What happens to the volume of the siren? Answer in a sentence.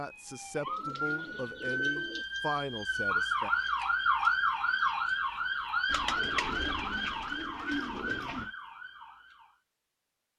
The loudness of the siren goes up, then down.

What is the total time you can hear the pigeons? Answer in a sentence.
The pigeons can be heard for 4 seconds in total.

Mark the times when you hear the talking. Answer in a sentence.
The talking can be heard from 0.0 to 3.5 s.